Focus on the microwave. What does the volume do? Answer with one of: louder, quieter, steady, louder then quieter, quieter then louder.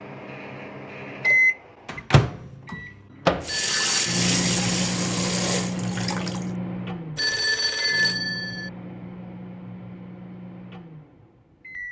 quieter.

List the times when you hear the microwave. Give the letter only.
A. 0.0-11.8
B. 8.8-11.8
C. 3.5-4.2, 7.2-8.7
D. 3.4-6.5
A.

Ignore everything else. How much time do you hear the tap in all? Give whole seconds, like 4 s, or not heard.
3 s.